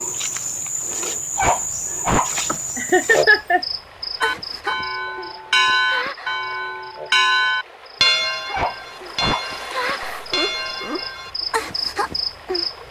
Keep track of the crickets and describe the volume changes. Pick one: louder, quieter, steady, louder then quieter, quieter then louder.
quieter then louder.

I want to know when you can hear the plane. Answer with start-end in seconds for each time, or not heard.
not heard.